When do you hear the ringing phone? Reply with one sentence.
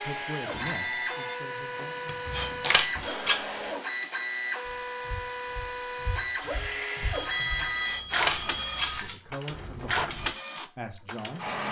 The ringing phone can be heard from 0.5 to 3.1 s and from 7.1 to 9.0 s.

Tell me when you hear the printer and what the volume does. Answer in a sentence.
The printer can be heard from 0.0 to 11.6 s, at a steady volume.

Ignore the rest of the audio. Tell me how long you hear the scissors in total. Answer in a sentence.
The scissors can be heard for 3 seconds in total.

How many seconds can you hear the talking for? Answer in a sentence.
You can hear the talking for 5 seconds altogether.